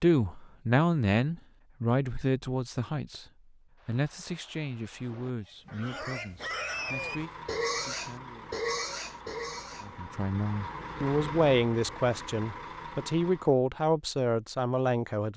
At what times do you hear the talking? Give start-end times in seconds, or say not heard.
0.0-8.6, 9.8-15.3.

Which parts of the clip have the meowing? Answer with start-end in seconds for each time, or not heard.
not heard.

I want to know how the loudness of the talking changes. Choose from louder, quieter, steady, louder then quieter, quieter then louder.
quieter then louder.